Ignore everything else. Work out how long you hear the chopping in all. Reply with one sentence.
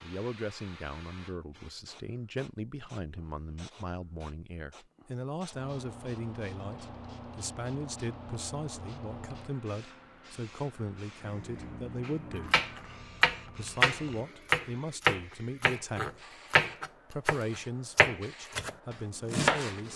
You can hear the chopping for 8 seconds altogether.